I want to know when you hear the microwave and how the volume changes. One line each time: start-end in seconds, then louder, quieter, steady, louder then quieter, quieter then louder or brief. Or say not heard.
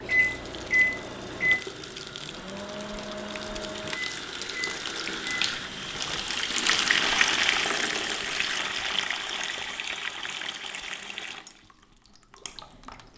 0.0-6.2 quieter.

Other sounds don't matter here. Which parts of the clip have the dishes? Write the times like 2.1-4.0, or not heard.
not heard.